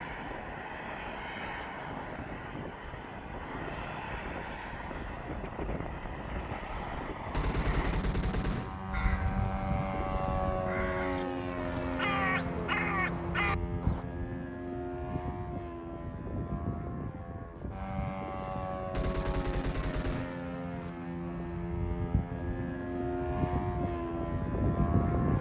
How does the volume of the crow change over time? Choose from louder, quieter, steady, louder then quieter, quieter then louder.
louder.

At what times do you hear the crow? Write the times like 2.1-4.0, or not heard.
8.9-14.1.